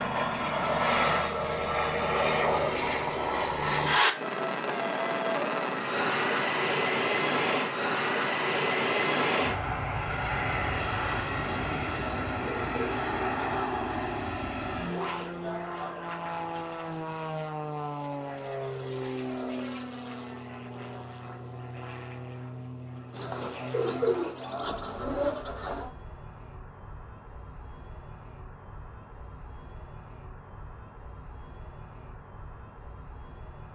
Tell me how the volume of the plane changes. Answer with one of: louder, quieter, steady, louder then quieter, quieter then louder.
quieter.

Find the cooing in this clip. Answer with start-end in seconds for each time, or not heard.
11.8-13.7, 23.1-25.9.